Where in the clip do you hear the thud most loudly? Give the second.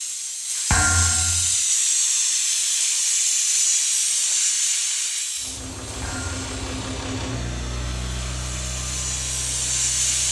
1 s.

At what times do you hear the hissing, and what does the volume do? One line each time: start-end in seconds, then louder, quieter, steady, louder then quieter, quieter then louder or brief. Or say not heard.
0.0-10.2 quieter then louder.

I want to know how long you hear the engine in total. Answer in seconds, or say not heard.
5 s.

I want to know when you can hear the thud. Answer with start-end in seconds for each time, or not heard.
0.7-1.6, 6.0-6.4.